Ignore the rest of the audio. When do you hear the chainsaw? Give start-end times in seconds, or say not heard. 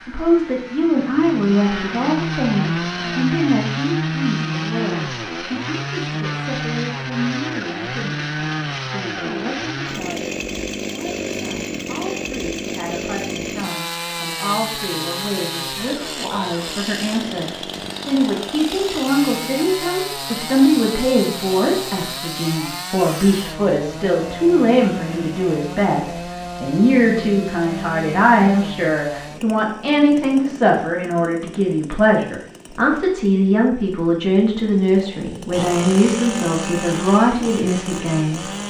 0.0-38.6.